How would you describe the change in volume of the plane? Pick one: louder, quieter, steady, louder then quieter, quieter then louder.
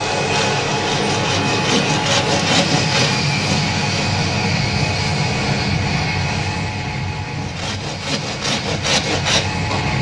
quieter.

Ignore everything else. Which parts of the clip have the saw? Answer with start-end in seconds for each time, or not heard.
0.2-4.1, 7.3-9.9.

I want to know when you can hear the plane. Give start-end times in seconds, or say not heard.
0.0-9.9.